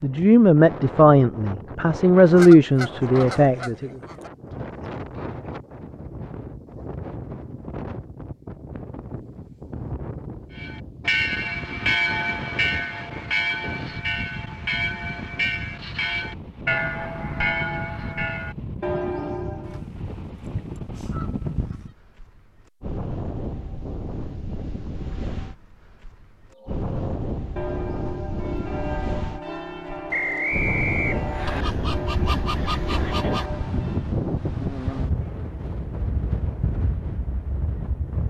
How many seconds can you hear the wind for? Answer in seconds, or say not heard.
38 s.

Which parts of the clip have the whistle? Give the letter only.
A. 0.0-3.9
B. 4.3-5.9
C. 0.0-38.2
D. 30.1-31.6
D.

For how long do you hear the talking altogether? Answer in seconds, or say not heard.
4 s.